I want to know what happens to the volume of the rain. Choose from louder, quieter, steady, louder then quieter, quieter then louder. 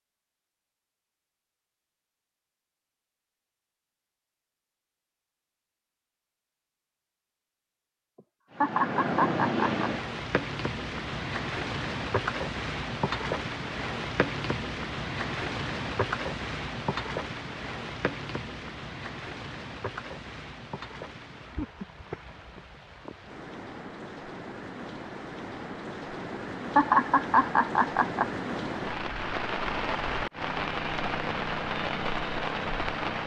quieter then louder.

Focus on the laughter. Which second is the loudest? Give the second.
27 s.